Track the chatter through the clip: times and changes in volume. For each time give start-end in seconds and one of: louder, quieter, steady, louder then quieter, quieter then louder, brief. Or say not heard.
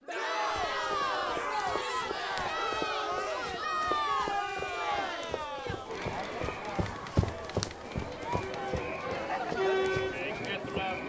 0.1-11.0 quieter then louder.